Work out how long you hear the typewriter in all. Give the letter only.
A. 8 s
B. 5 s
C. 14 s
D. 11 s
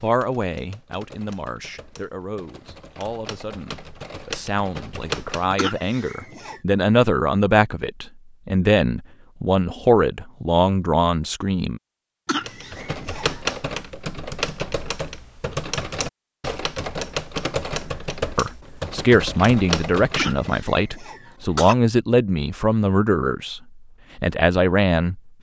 C.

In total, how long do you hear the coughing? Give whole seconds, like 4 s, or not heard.
4 s.